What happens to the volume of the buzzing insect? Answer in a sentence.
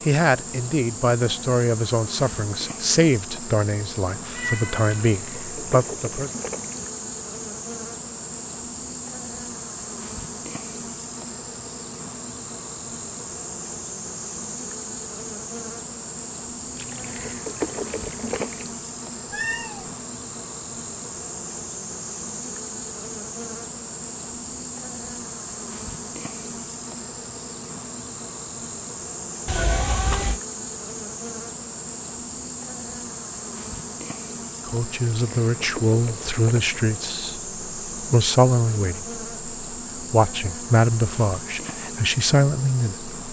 The loudness of the buzzing insect stays about the same.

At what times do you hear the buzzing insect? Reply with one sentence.
The buzzing insect can be heard from 0.0 to 43.2 s.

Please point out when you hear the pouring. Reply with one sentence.
You can hear the pouring from 5.0 to 6.9 s, from 16.8 to 18.7 s and from 35.0 to 36.7 s.